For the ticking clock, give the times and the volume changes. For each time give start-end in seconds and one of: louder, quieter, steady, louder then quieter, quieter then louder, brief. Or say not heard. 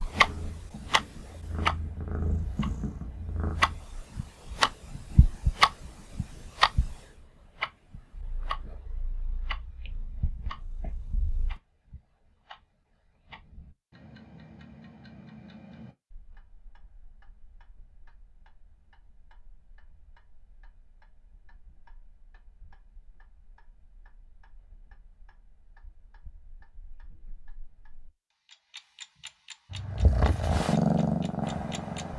0.0-32.1 quieter then louder.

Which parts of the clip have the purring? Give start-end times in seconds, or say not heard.
0.0-4.0, 8.1-11.6, 29.7-32.1.